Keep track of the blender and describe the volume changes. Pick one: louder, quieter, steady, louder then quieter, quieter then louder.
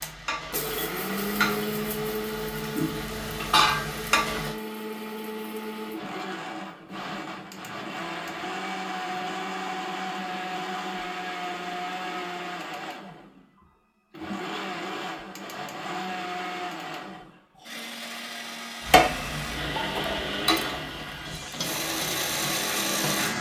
steady.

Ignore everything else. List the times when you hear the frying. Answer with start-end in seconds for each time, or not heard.
0.0-4.5, 18.9-23.3.